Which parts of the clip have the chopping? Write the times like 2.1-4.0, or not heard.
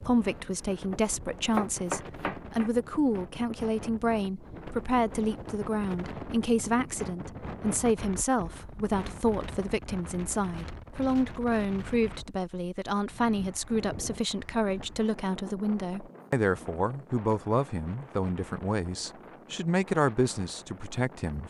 0.0-2.8.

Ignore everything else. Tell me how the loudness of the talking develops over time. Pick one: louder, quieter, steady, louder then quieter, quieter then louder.
steady.